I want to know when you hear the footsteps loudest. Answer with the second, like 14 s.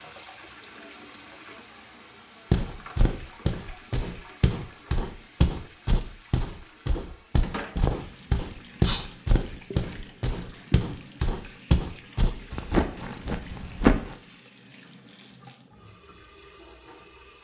14 s.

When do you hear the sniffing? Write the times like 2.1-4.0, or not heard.
8.2-9.1.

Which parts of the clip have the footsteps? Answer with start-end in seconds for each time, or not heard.
2.5-14.2.